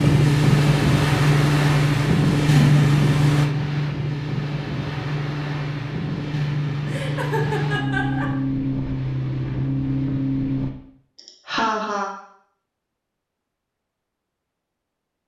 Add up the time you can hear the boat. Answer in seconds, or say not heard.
11 s.